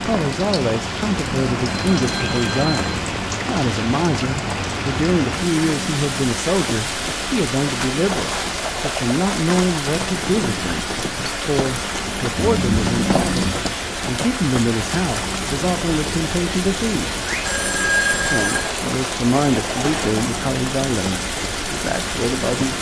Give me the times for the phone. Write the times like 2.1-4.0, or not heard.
1.6-3.0, 12.3-13.6, 17.2-18.7.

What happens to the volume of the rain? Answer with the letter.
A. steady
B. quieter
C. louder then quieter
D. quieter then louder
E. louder
A.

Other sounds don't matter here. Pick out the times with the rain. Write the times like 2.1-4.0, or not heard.
0.0-22.7.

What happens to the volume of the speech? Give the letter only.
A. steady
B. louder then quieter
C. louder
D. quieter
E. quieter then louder
A.